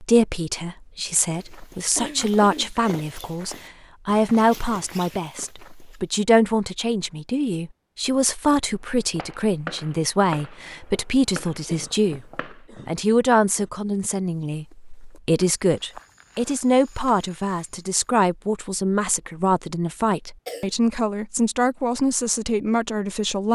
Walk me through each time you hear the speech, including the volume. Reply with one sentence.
The speech can be heard from 0.0 to 12.2 s, at a steady volume; and from 12.8 to 23.5 s, at a steady volume.